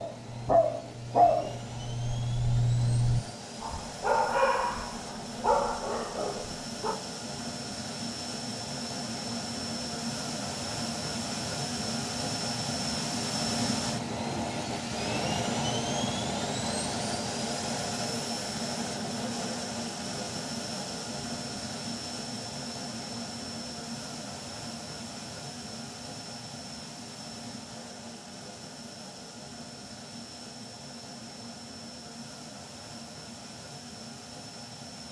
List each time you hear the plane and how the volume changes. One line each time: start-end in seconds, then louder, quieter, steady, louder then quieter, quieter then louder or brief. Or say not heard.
0.0-35.0 louder then quieter.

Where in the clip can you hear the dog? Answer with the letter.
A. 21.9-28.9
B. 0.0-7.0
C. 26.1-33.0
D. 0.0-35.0
B.